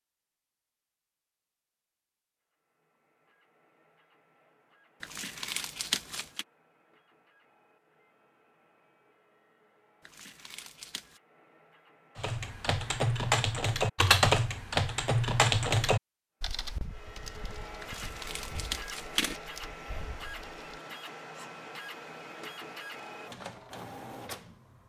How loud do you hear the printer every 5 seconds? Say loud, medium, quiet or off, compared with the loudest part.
quiet, quiet, quiet, loud, loud.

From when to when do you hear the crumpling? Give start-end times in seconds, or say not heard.
5.0-6.5, 10.0-11.2, 17.8-19.4.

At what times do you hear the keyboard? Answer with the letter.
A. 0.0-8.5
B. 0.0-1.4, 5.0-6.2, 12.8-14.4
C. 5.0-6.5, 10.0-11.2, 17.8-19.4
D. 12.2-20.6
D.